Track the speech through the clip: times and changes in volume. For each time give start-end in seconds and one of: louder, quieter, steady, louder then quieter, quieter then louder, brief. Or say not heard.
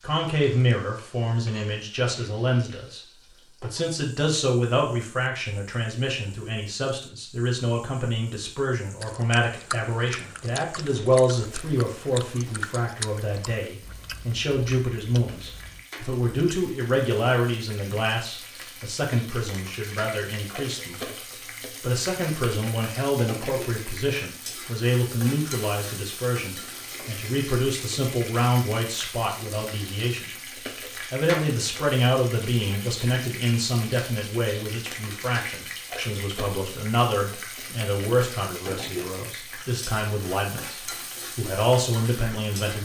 0.0-42.8 steady.